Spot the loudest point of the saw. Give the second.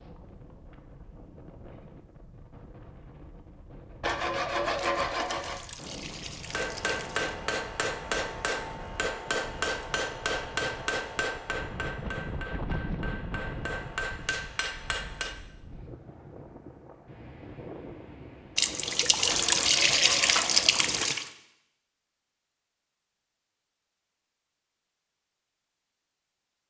5 s.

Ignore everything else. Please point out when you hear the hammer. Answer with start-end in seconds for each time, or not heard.
6.5-15.3.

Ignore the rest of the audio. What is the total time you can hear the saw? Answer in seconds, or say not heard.
3 s.